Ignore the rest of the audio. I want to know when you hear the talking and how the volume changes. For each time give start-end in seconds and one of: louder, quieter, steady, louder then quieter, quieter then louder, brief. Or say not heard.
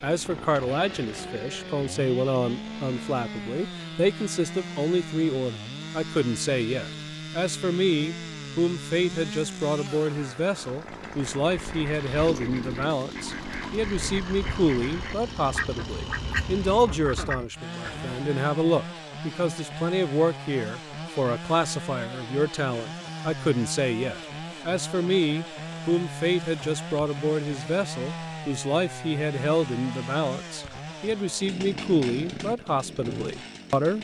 0.0-33.9 steady.